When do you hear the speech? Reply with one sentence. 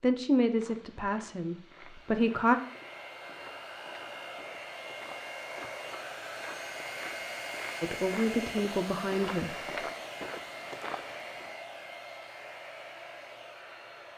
You can hear the speech from 0.0 to 2.5 s and from 7.8 to 9.8 s.